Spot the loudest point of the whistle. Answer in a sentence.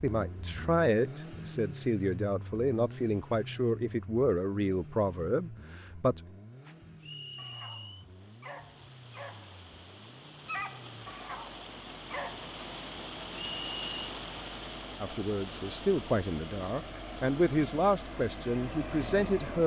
The volume of the whistle peaks at 14 seconds.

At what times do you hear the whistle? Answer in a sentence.
The whistle can be heard from 7.0 to 8.1 s and from 13.3 to 14.1 s.